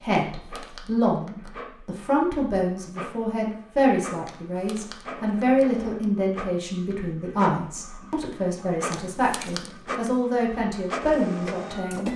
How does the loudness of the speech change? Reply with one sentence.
The loudness of the speech stays about the same.